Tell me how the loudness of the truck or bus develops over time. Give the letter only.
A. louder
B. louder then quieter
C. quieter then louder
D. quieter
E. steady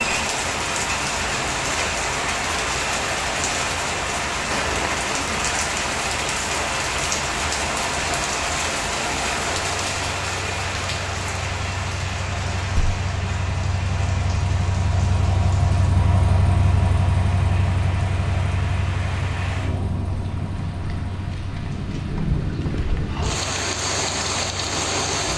B.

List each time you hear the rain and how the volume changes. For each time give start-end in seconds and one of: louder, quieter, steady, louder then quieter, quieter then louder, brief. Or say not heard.
0.0-25.3 quieter then louder.